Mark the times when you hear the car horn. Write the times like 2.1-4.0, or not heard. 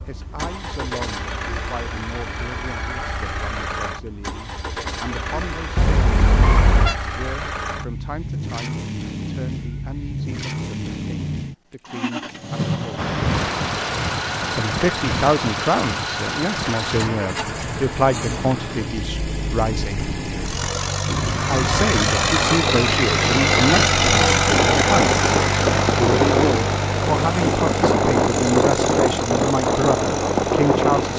5.8-7.0.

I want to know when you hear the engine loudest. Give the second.
24 s.